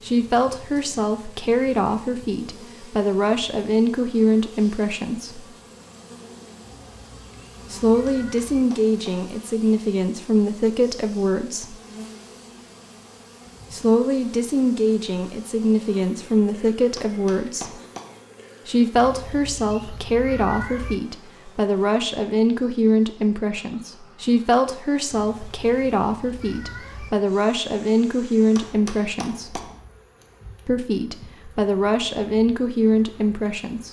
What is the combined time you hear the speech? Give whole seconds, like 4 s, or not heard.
28 s.